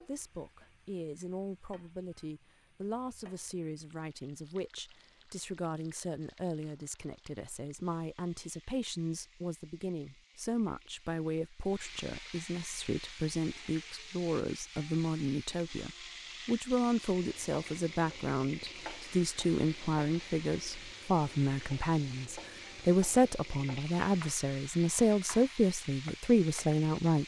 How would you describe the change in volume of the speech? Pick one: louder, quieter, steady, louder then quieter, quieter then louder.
louder.